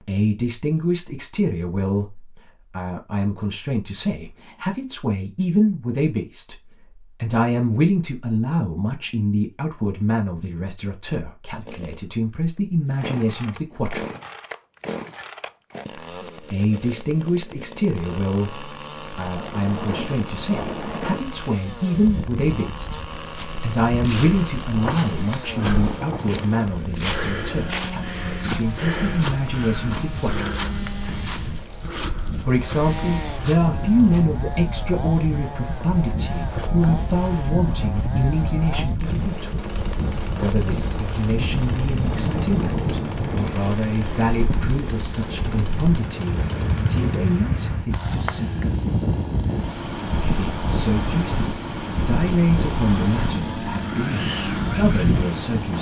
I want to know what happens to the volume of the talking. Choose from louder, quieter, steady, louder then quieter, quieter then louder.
steady.